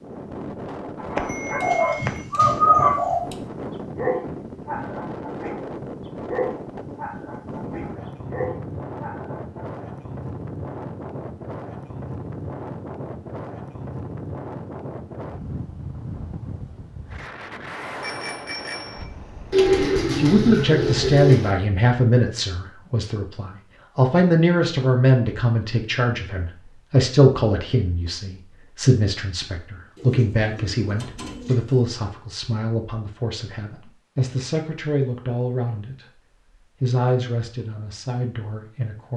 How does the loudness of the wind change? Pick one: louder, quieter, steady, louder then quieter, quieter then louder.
steady.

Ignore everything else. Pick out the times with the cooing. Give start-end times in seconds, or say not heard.
1.6-3.2, 19.5-21.6, 29.9-31.8.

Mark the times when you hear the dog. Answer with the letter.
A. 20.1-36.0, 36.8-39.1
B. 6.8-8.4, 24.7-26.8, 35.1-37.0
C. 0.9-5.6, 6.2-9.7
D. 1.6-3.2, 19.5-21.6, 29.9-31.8
C.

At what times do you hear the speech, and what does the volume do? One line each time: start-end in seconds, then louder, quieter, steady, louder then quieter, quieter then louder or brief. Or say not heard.
20.1-36.0 quieter
36.8-39.1 brief.